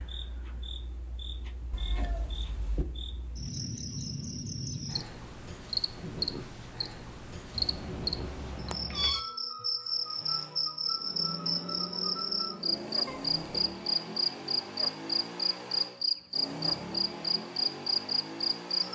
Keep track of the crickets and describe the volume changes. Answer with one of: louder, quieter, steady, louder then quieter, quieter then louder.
louder.